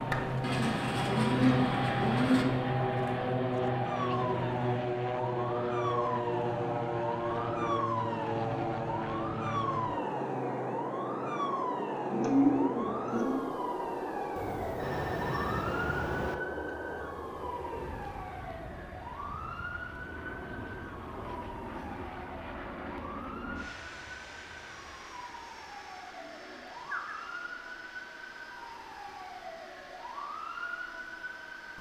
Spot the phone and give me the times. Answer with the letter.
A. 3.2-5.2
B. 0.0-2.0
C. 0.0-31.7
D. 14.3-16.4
D.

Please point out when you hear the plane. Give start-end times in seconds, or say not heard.
0.0-31.7.